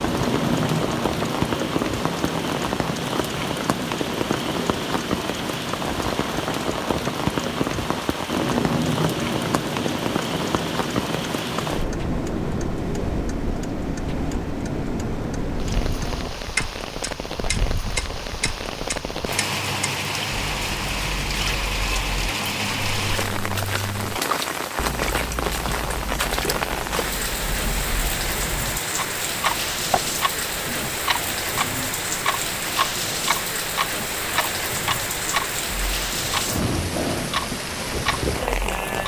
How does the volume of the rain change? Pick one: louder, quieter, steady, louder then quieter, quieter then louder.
steady.